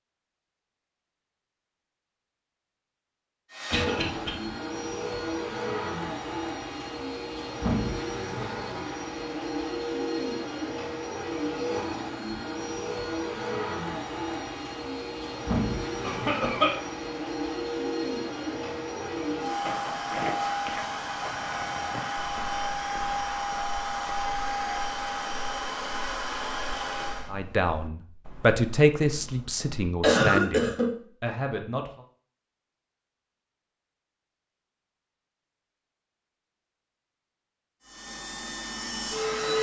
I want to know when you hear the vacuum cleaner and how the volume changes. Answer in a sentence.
The vacuum cleaner can be heard from 3.5 to 27.3 s, at a steady volume; and briefly from 37.8 to 39.5 s.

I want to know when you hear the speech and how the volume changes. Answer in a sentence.
You can hear the speech from 27.3 to 32.0 s, getting quieter.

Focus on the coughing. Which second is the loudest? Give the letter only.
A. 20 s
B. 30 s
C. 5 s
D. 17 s
B.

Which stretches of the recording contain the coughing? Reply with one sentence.
The coughing can be heard from 3.7 to 4.3 s, from 16.0 to 16.8 s and from 30.0 to 30.9 s.